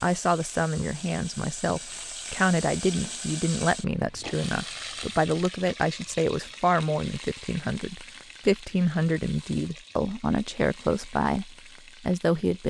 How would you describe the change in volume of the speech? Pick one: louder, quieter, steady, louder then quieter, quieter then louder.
steady.